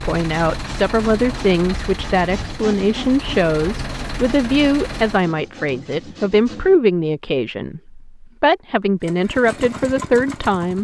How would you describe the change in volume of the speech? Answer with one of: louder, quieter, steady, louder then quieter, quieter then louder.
steady.